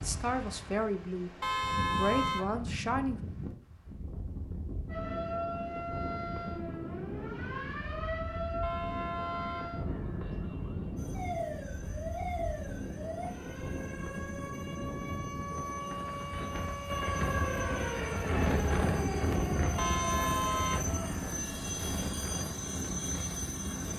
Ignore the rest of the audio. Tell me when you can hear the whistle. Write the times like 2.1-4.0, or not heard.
not heard.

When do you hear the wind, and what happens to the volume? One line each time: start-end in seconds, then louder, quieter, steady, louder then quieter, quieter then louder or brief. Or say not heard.
0.0-23.9 louder.